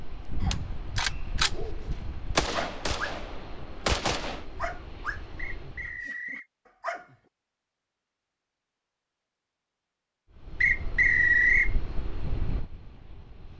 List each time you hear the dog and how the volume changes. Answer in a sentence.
You can hear the dog from 1.4 to 7.2 s, getting quieter.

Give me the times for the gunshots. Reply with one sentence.
The gunshots can be heard from 0.5 to 4.5 s.